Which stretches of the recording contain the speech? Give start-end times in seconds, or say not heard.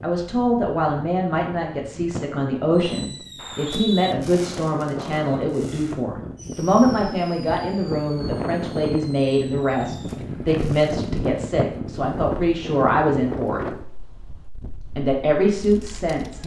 0.0-13.6, 14.9-16.4.